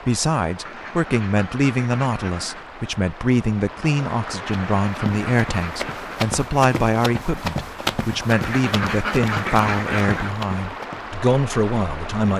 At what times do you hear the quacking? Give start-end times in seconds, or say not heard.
0.7-2.6, 4.2-6.2, 8.3-10.3.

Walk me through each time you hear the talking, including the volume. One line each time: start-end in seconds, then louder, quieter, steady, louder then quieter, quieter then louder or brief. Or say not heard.
0.1-12.3 steady.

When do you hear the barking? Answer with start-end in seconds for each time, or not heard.
not heard.